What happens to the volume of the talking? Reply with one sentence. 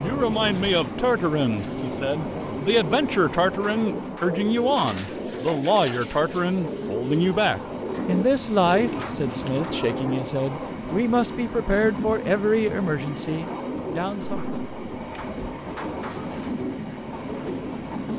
The loudness of the talking stays about the same.